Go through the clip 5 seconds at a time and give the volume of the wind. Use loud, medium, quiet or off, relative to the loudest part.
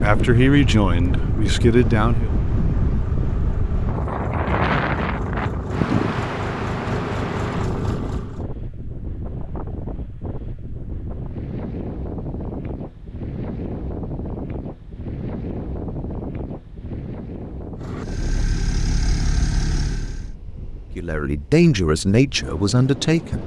loud, loud, medium, medium, quiet.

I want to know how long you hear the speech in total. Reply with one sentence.
The speech can be heard for 5 seconds in total.